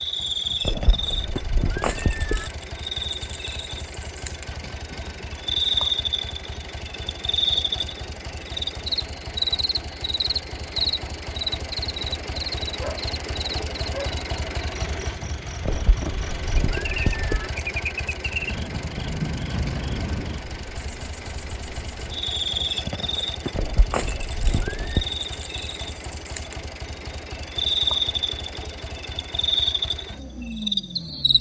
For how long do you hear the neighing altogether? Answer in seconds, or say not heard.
5 s.